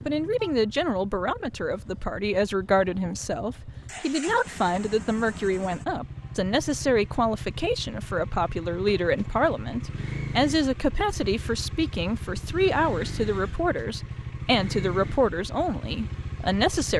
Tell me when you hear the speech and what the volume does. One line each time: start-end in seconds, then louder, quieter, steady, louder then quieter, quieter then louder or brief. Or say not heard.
0.0-16.9 steady.